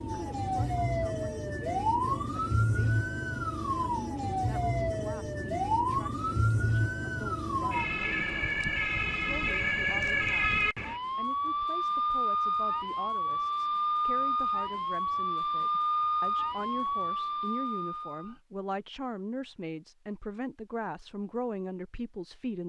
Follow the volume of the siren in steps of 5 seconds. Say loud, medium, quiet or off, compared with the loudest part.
loud, loud, loud, loud, off.